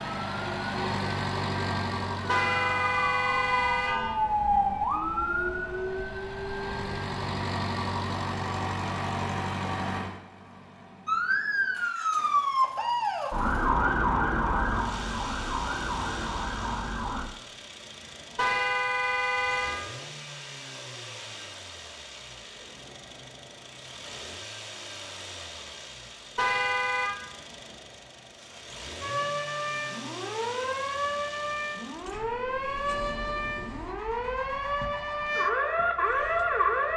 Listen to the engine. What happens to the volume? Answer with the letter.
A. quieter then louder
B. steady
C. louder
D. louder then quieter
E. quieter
E.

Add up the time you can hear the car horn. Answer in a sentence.
The car horn can be heard for 4 seconds in total.